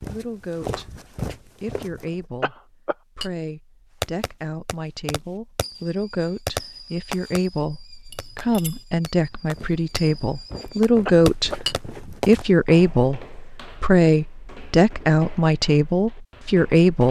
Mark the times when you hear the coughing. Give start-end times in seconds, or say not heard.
2.4-3.0, 11.1-11.6.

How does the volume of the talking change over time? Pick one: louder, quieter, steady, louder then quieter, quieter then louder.
louder.